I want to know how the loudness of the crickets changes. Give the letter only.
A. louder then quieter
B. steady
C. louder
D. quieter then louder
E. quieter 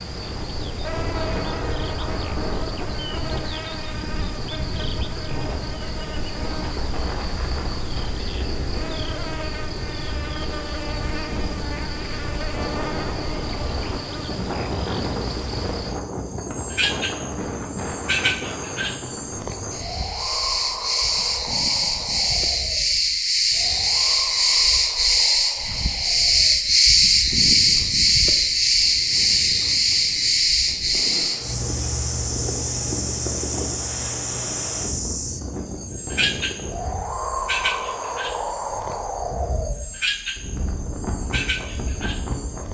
A.